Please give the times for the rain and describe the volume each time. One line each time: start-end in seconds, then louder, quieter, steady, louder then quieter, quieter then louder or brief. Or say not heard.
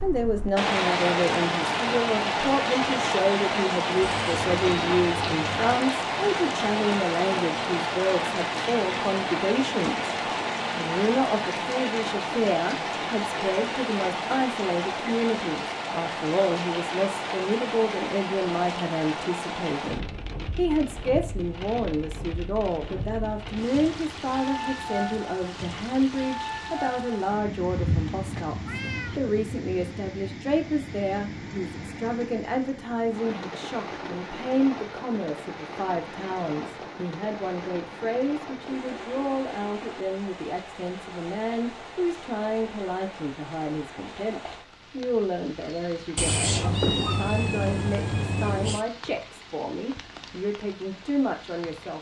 0.0-51.9 quieter.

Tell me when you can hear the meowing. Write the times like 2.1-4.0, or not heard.
4.0-5.8, 27.6-29.2, 46.1-48.9.